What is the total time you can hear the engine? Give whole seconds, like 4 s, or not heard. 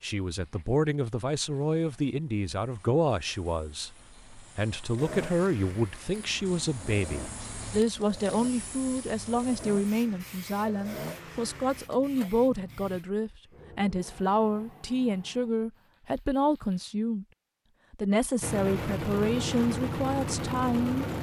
11 s.